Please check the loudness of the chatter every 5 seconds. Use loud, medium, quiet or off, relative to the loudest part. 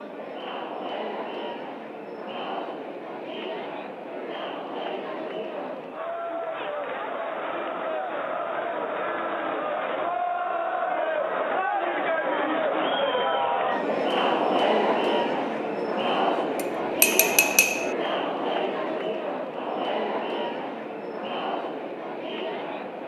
medium, medium, loud, loud, medium.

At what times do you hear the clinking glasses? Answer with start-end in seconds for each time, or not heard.
16.6-17.9.